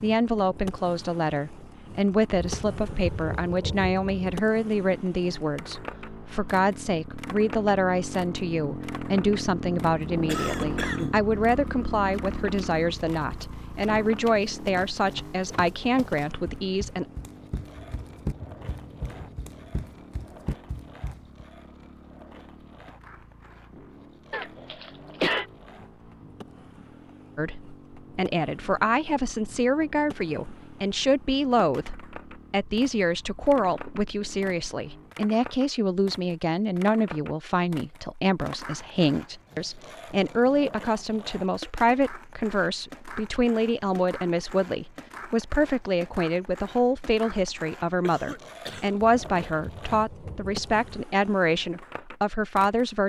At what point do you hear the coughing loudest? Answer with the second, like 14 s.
25 s.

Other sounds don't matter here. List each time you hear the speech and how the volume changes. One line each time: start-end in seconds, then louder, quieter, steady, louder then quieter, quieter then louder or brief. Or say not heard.
0.0-17.1 steady
27.4-53.0 steady.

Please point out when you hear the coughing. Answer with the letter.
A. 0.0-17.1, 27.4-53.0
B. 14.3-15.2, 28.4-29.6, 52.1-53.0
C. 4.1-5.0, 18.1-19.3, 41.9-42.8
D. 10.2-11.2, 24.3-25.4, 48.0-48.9
D.